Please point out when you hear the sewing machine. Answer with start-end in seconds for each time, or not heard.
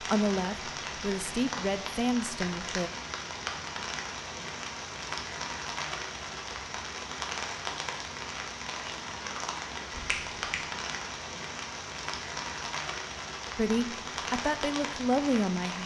not heard.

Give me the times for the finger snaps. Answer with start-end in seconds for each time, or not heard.
9.9-10.6.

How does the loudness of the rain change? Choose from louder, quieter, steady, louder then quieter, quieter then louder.
steady.